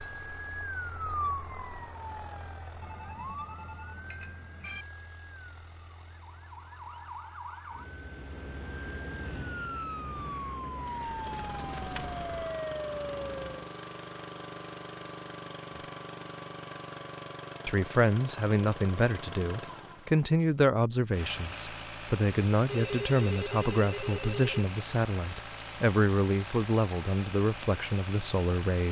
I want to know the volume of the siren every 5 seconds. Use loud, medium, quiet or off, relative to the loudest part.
loud, medium, loud, off, off, off.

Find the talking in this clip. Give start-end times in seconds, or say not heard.
17.6-28.8.